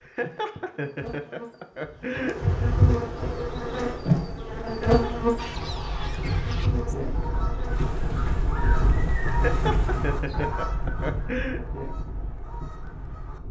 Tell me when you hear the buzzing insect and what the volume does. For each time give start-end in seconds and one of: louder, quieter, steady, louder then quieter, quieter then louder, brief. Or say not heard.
0.0-10.4 louder then quieter.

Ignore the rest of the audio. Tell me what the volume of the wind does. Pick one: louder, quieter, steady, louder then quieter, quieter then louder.
louder then quieter.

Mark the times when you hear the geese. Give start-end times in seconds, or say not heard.
5.3-13.4.